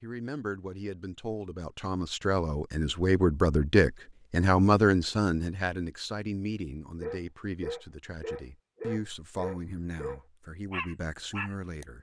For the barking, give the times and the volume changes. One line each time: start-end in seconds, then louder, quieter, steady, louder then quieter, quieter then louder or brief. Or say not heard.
7.0-11.8 steady.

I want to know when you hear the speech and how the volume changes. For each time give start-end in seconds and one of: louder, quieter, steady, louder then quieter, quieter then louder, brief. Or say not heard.
0.0-11.9 louder then quieter.